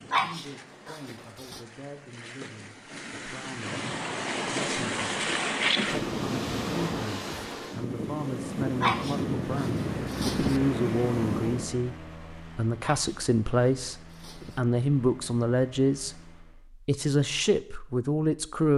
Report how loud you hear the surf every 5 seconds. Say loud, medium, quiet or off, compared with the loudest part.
medium, loud, loud, off.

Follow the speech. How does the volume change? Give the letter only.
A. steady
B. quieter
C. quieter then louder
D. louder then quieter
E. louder
E.